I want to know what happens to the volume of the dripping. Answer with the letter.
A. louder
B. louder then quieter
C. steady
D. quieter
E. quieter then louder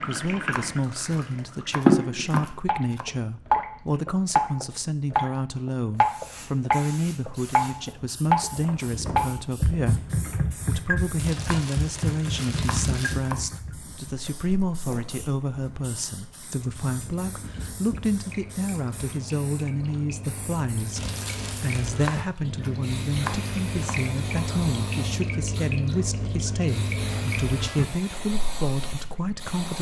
E.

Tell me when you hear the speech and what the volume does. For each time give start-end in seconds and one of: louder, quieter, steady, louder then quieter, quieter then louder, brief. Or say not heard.
0.0-29.7 steady.